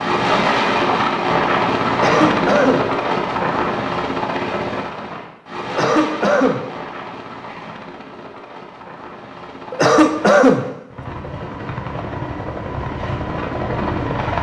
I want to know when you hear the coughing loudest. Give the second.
10 s.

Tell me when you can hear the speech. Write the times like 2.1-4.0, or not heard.
not heard.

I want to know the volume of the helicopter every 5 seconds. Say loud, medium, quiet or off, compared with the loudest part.
loud, quiet, medium.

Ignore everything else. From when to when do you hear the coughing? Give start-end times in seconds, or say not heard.
1.9-2.9, 5.7-6.7, 9.7-10.7.